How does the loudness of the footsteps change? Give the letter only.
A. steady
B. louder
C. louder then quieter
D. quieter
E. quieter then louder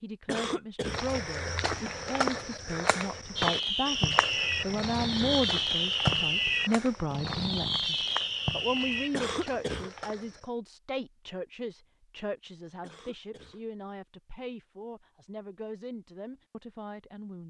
D.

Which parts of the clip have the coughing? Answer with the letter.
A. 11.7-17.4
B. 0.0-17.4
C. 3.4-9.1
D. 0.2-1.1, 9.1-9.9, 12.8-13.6
D.